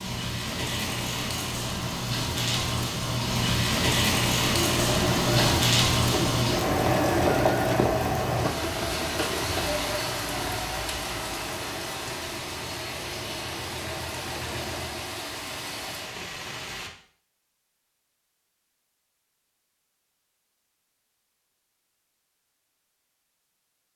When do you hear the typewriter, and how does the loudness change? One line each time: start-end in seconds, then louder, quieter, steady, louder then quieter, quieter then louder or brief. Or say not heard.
not heard.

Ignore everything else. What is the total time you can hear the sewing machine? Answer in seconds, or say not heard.
11 s.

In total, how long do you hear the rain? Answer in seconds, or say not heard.
17 s.